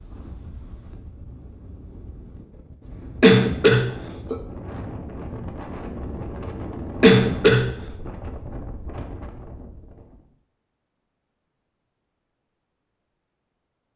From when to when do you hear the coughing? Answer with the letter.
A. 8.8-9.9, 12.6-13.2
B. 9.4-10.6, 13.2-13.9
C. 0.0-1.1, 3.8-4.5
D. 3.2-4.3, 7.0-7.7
D.